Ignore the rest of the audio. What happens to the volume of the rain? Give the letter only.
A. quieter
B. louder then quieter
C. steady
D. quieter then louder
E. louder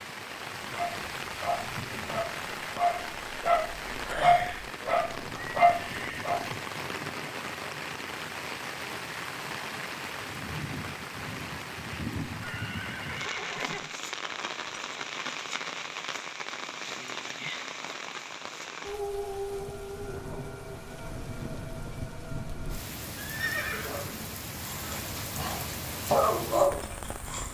C.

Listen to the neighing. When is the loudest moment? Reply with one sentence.
The loudest moment of the neighing is at 24 seconds.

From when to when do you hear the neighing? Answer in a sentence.
The neighing can be heard from 5.3 to 6.3 s, from 12.3 to 13.9 s and from 23.1 to 24.4 s.